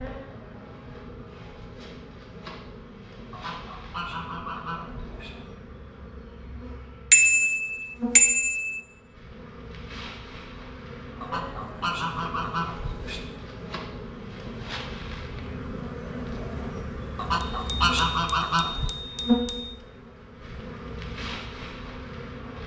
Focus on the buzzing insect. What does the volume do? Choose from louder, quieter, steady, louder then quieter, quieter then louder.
louder.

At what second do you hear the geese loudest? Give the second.
18 s.